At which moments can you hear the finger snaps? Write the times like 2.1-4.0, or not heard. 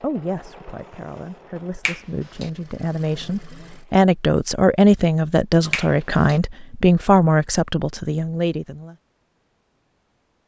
1.9-2.5, 5.7-6.4.